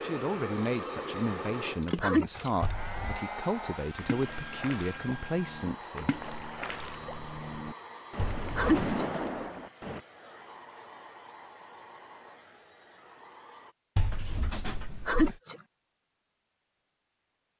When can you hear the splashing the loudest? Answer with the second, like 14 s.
9 s.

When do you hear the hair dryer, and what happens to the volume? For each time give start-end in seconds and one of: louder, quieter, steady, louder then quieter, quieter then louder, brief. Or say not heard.
0.0-13.8 quieter.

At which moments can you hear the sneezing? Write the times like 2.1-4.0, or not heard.
2.0-2.5, 8.6-9.1, 15.1-15.6.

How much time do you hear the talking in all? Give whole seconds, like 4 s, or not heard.
6 s.